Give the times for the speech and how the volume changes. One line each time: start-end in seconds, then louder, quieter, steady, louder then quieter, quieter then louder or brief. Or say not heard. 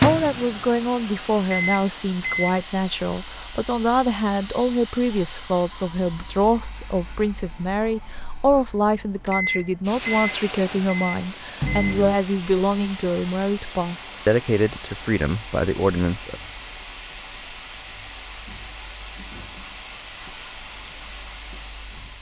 0.0-16.4 steady.